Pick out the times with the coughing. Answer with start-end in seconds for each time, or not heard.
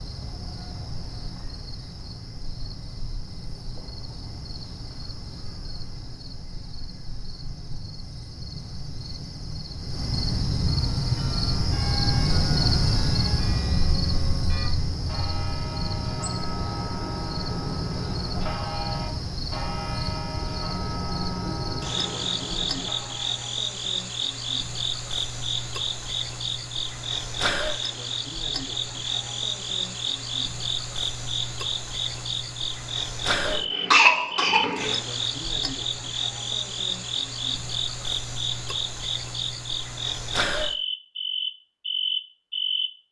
33.4-35.0.